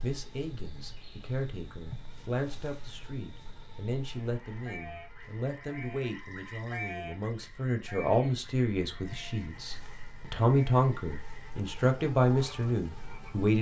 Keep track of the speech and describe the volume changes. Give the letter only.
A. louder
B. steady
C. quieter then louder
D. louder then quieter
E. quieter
A.